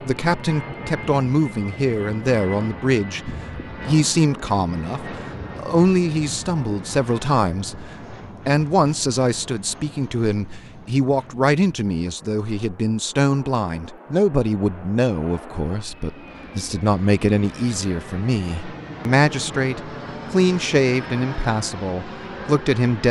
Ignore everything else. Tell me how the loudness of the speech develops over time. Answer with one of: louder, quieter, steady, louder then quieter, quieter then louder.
steady.